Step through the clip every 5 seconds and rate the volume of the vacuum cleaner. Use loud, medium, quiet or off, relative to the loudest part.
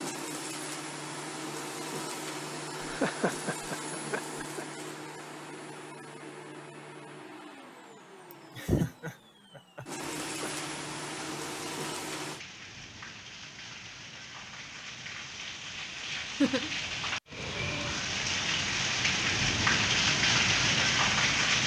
loud, medium, loud, off, off.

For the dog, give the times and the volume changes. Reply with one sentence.
The dog can't be heard in this clip.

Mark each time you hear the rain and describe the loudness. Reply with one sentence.
You can hear the rain from 10.0 to 21.6 s, getting louder.